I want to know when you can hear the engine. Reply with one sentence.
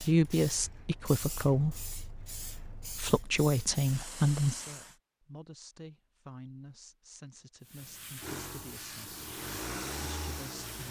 The engine can be heard from 8.2 to 10.8 s.